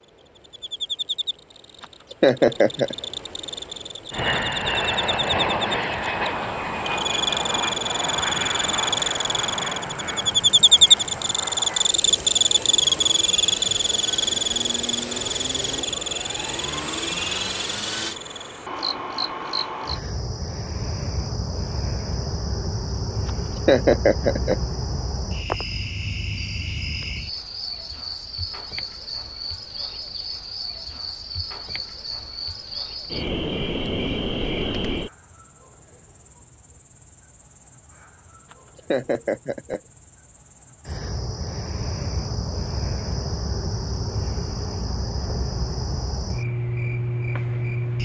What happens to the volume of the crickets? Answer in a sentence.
The volume of the crickets goes up, then down.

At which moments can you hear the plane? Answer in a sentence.
The plane can be heard from 4.1 to 18.2 s.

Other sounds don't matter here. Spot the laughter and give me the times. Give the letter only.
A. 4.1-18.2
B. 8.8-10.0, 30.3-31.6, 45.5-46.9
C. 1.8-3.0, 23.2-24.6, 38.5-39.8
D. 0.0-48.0
C.